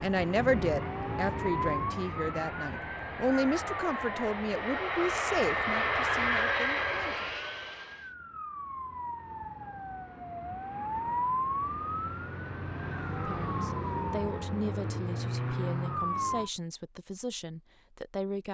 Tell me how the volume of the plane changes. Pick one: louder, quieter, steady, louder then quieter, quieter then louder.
louder.